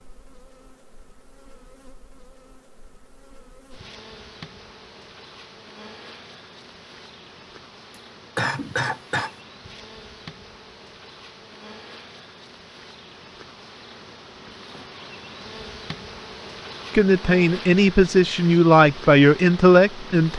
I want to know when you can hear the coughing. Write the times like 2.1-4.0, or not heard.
8.3-9.3.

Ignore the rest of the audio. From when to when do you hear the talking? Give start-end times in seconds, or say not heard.
16.9-20.3.